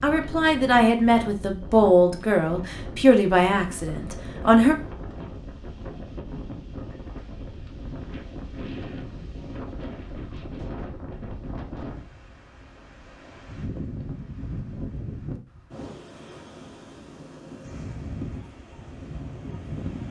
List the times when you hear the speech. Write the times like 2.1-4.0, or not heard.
0.0-4.8.